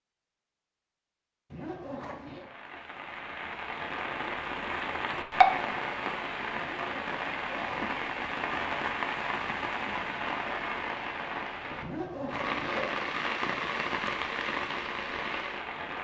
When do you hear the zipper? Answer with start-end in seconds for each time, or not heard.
1.5-2.5, 6.5-8.1, 11.8-12.9.